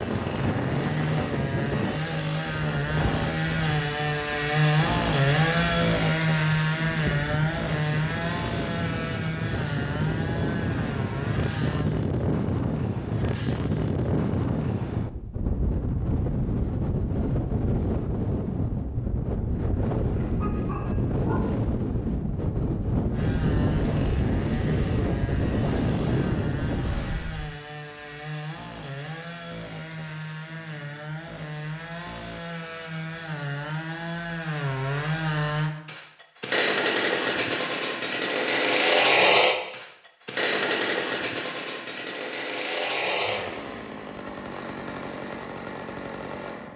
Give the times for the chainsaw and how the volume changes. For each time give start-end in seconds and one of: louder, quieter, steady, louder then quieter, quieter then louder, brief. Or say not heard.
0.0-11.9 louder then quieter
23.1-46.7 louder then quieter.